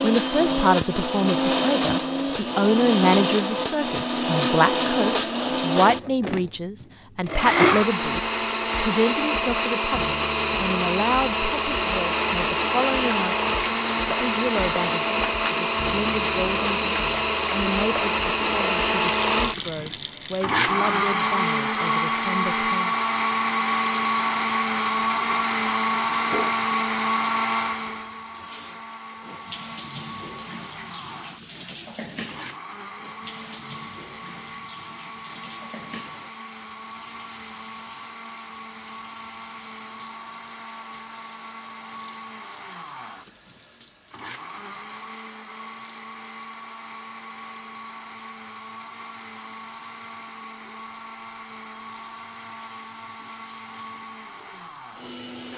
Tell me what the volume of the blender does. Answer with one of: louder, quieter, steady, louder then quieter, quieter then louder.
quieter.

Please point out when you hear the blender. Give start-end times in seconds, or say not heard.
0.0-55.5.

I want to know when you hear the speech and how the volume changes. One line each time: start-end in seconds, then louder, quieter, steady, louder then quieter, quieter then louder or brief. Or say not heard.
0.0-22.9 quieter.